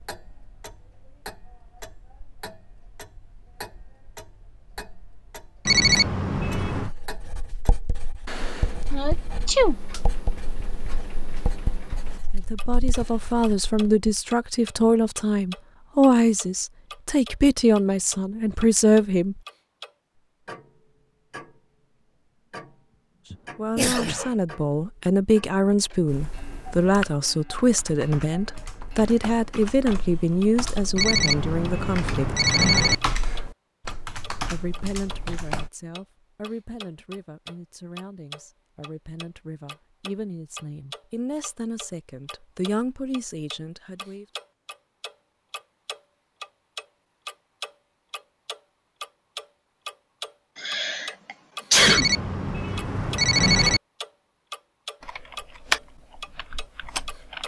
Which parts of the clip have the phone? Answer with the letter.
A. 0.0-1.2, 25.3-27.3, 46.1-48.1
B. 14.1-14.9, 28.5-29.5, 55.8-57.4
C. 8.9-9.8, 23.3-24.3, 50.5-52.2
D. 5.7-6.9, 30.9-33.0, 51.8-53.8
D.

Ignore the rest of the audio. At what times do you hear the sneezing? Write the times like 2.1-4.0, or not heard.
8.9-9.8, 23.3-24.3, 50.5-52.2.